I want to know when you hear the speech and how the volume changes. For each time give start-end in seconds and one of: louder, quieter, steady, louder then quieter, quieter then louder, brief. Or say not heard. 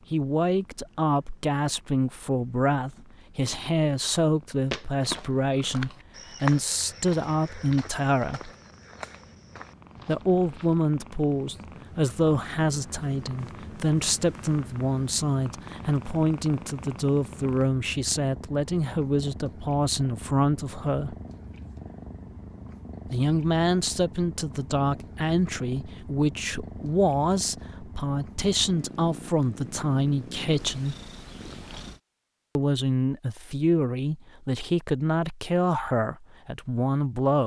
0.1-8.5 steady
10.1-21.1 steady
23.1-30.9 steady
32.5-37.4 steady.